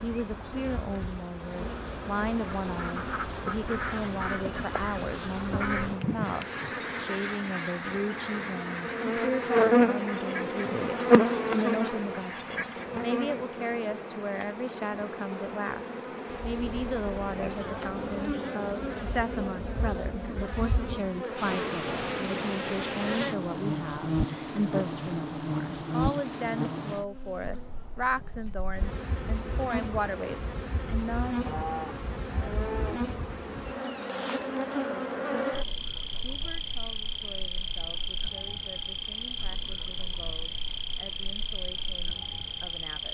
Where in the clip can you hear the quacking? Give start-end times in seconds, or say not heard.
2.5-12.8.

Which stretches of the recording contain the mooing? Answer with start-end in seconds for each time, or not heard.
16.2-18.3, 31.4-33.0.